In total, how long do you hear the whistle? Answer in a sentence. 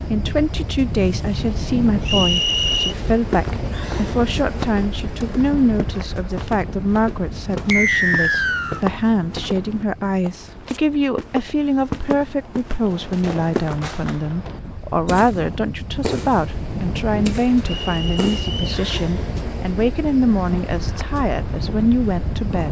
The whistle can be heard for 3 seconds in total.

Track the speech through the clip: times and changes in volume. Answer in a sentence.
The speech can be heard from 0.1 to 22.6 s, at a steady volume.